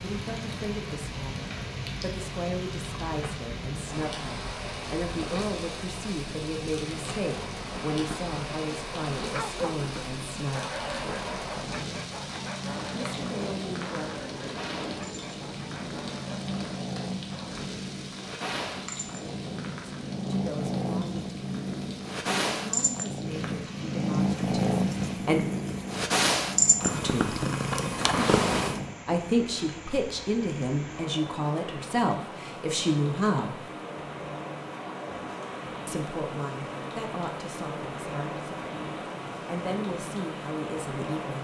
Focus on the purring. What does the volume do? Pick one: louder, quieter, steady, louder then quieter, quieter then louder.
louder.